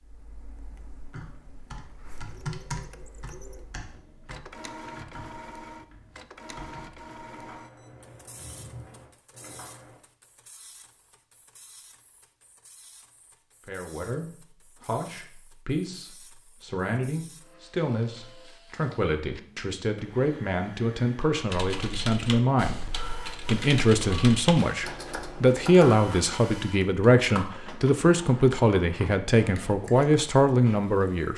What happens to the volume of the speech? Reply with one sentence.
The volume of the speech goes up.